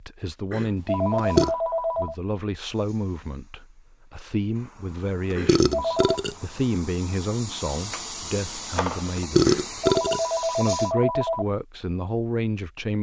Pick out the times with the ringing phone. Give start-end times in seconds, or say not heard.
0.5-2.1, 5.3-6.2, 9.4-11.4.